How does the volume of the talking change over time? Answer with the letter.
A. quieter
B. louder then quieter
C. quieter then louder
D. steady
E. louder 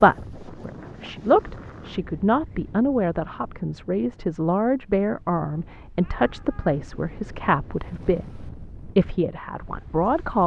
D.